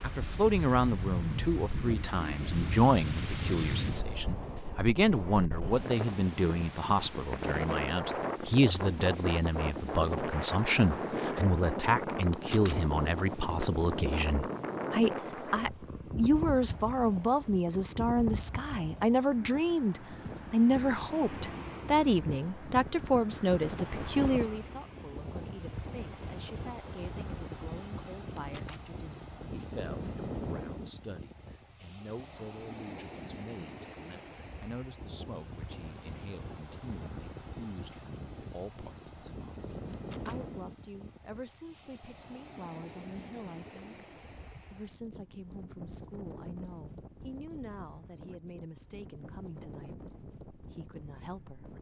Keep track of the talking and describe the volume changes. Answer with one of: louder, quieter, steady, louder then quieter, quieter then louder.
quieter.